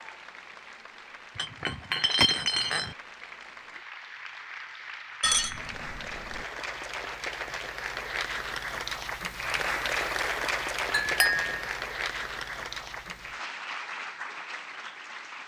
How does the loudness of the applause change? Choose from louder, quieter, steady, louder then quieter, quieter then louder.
louder then quieter.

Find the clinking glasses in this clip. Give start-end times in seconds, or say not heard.
1.4-3.0, 5.2-6.5, 10.9-11.7.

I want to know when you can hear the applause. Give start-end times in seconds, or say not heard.
0.0-15.4.